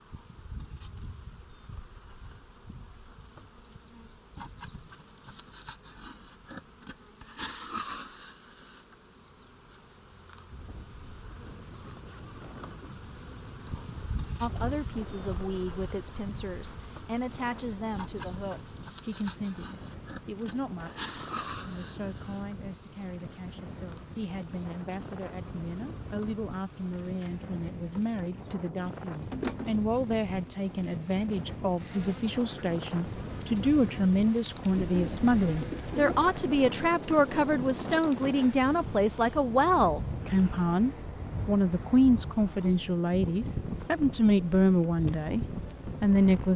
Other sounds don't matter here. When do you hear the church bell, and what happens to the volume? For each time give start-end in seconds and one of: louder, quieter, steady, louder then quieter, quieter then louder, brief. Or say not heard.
not heard.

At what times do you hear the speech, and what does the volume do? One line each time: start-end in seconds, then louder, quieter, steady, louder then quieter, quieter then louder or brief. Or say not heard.
14.4-46.5 louder.